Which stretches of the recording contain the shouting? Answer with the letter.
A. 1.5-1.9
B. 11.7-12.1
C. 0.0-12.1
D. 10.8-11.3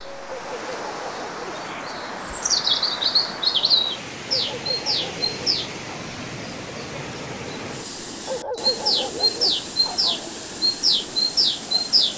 A.